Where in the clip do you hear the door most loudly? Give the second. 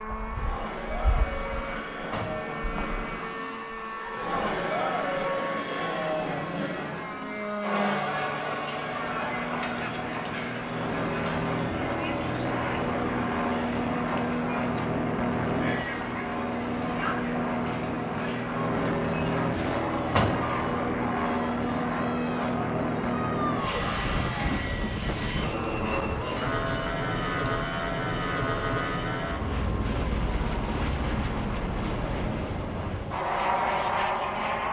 20 s.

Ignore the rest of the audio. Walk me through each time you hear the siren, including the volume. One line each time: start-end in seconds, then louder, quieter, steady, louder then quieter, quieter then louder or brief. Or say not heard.
not heard.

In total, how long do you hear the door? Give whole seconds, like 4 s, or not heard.
2 s.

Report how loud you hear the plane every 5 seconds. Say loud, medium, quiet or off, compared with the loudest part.
medium, medium, loud, loud, loud, loud, loud.